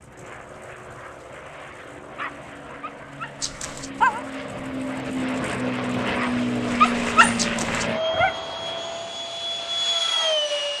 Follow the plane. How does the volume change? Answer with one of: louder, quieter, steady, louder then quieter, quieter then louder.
louder.